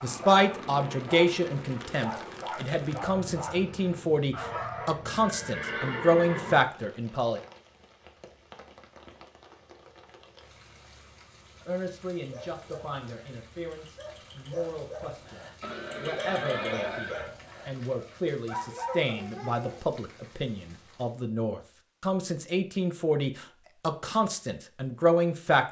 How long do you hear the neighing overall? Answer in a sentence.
You can hear the neighing for 3 seconds altogether.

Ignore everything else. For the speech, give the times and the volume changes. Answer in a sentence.
You can hear the speech from 0.0 to 7.4 s, getting quieter then louder; and from 11.7 to 25.6 s, getting louder.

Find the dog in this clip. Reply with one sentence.
The dog can be heard from 0.0 to 5.0 s and from 12.2 to 19.8 s.